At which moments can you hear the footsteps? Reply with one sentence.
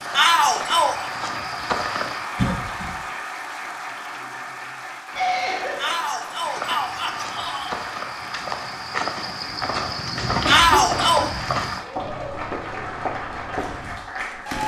The footsteps can be heard from 0.0 to 2.2 s and from 6.3 to 14.6 s.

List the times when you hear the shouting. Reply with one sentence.
The shouting can be heard from 0.1 to 1.1 s, from 5.8 to 7.8 s and from 10.4 to 11.2 s.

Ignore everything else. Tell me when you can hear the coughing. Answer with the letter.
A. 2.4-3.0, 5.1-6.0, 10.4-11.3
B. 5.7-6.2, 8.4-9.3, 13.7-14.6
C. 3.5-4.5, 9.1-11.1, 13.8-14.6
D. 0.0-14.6
A.